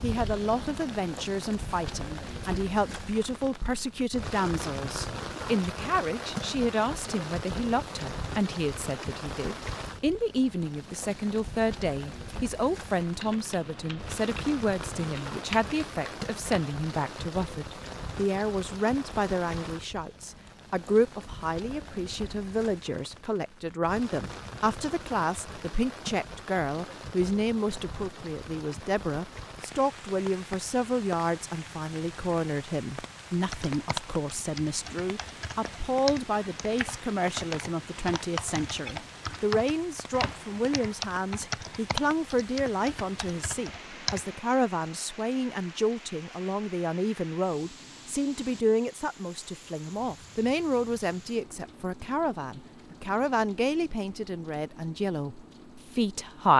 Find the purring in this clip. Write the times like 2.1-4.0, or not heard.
not heard.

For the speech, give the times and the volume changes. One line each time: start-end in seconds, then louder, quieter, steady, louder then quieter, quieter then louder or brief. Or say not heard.
0.0-56.5 steady.